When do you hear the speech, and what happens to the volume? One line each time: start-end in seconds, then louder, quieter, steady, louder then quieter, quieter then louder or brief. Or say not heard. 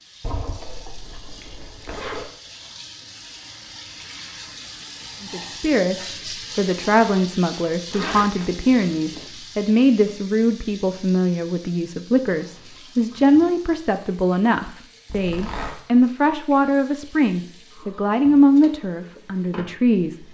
5.2-20.1 steady.